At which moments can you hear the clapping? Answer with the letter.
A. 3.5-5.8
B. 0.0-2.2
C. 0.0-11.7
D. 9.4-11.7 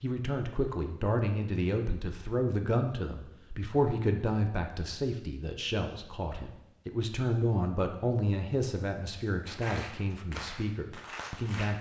D.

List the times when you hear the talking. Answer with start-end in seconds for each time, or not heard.
0.0-11.7.